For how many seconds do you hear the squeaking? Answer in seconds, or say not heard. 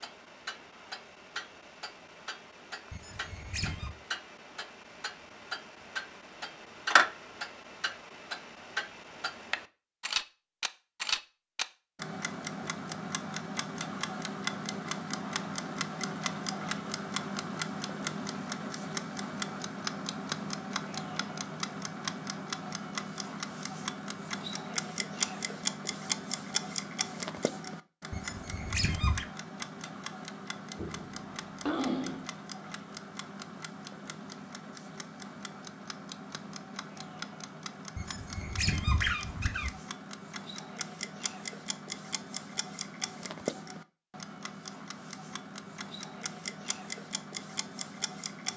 4 s.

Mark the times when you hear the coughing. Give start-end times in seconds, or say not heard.
30.8-32.3.